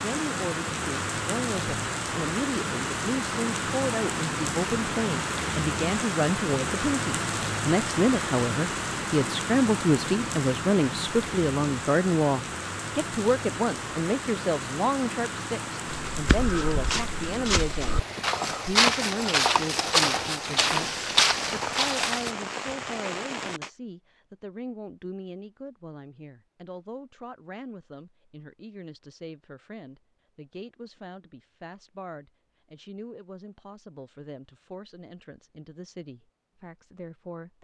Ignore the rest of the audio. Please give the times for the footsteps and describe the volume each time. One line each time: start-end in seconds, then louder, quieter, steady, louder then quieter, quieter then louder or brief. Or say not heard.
15.8-22.4 louder.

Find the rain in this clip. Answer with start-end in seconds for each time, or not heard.
0.0-23.7.